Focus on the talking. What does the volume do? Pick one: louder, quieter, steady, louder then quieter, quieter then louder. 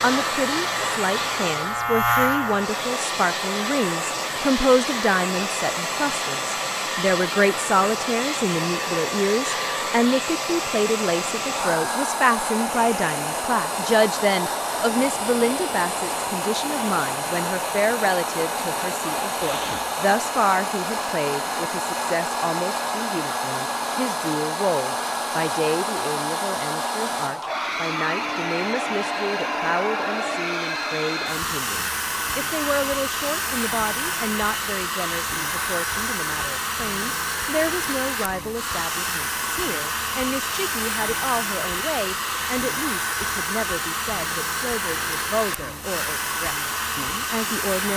quieter.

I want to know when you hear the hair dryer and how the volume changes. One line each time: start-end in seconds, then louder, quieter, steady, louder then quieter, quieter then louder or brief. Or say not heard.
0.0-47.9 steady.